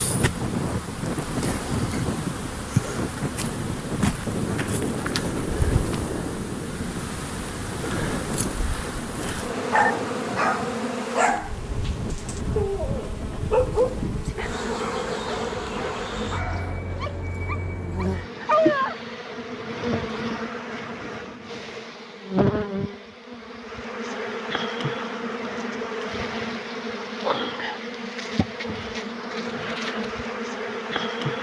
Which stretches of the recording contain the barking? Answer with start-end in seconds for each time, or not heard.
9.7-18.9.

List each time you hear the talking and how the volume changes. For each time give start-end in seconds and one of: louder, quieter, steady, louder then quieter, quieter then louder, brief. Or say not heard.
not heard.